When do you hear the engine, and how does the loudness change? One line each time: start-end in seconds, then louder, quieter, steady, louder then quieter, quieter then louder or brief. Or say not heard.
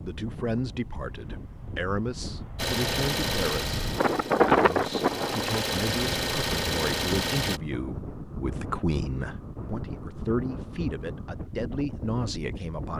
2.5-7.6 quieter then louder.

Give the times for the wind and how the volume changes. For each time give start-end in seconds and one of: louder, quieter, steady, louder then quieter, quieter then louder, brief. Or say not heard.
0.0-12.9 louder then quieter.